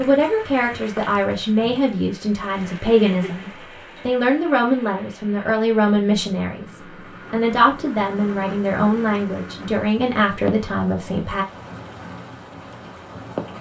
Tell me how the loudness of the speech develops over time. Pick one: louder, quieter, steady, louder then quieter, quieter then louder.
steady.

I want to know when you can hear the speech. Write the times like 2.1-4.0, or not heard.
0.0-11.4.